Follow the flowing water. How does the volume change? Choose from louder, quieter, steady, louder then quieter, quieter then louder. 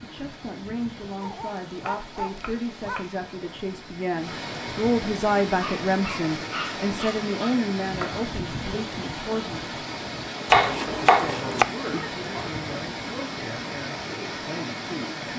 louder.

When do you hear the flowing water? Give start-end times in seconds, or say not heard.
0.0-15.3.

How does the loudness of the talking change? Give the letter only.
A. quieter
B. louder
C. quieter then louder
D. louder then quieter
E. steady
D.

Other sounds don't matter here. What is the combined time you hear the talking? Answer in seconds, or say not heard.
14 s.